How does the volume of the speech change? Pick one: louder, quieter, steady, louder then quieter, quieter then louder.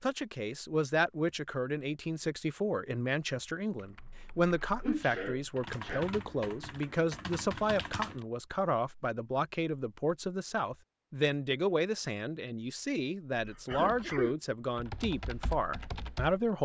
steady.